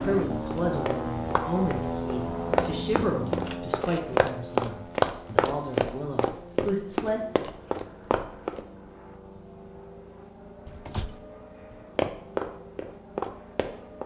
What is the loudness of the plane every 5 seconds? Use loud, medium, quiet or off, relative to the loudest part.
loud, quiet, quiet.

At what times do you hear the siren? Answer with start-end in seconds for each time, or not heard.
not heard.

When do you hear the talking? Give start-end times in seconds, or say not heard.
0.0-7.2.